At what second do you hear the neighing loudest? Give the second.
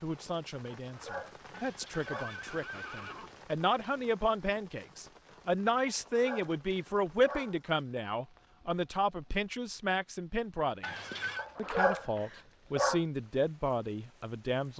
11 s.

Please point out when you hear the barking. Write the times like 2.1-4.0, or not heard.
0.8-2.3, 5.8-7.6, 11.3-13.0.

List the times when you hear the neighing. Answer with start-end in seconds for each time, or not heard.
1.5-3.4, 10.8-11.4.